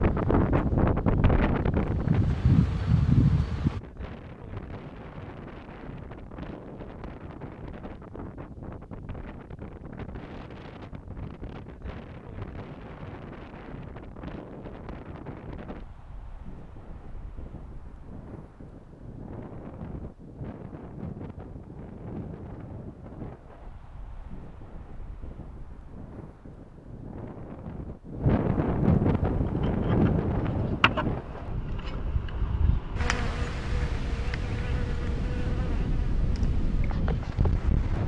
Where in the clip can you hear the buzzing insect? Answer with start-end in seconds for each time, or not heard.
0.0-3.8, 29.4-38.0.